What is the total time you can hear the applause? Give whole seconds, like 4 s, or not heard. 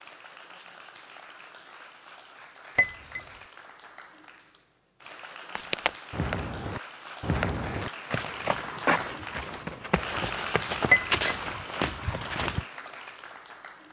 14 s.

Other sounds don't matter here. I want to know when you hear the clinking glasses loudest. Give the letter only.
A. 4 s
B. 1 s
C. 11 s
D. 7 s
C.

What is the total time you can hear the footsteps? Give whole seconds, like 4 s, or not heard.
7 s.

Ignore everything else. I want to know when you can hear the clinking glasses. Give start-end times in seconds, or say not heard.
2.8-3.3, 10.9-11.5.